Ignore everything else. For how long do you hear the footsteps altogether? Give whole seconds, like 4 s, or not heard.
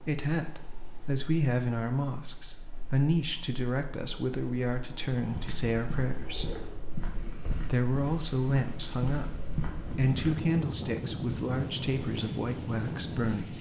5 s.